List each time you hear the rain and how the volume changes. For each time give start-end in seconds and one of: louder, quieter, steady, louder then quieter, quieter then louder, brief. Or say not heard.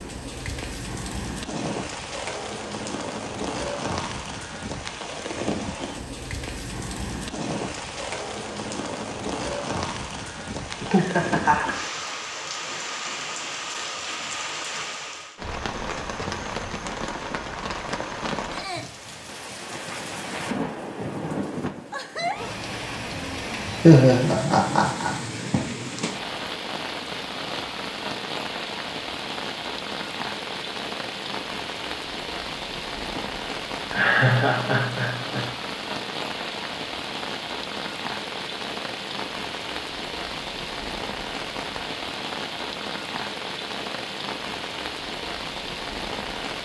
0.0-46.6 steady.